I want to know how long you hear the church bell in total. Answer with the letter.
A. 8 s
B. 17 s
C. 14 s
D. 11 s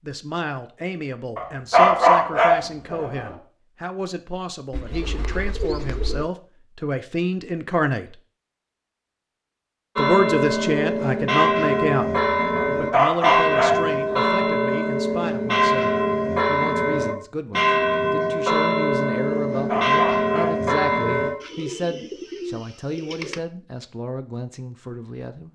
D.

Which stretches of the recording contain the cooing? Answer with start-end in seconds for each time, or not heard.
4.7-6.3, 21.4-23.4.